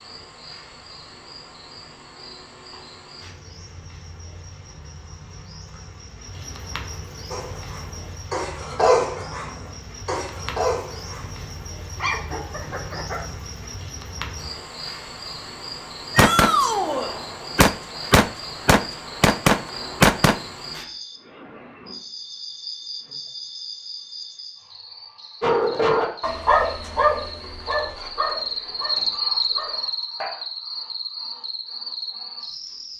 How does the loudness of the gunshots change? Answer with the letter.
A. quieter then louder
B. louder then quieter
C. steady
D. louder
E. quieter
D.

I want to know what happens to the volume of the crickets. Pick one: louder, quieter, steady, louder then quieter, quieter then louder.
louder.